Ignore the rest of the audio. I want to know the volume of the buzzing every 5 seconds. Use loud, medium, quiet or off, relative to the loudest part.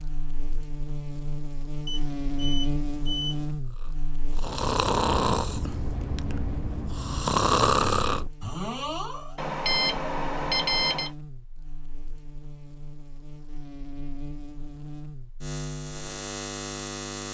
loud, medium, medium, loud.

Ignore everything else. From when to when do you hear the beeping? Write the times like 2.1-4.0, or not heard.
1.9-3.5, 9.3-11.1.